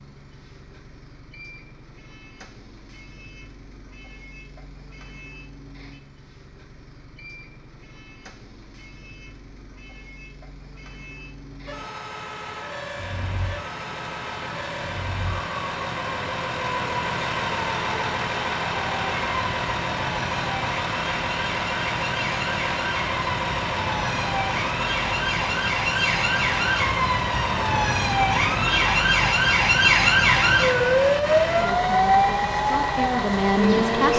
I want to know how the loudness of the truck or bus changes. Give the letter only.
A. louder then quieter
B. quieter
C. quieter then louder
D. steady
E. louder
E.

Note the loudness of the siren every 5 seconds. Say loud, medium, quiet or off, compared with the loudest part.
off, off, quiet, quiet, medium, loud, loud.